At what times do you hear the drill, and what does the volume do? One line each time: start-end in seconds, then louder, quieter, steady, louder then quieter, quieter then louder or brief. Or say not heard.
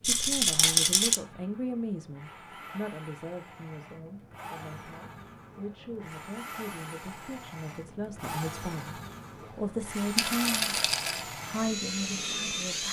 0.0-12.8 louder.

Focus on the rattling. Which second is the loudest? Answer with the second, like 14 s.
1 s.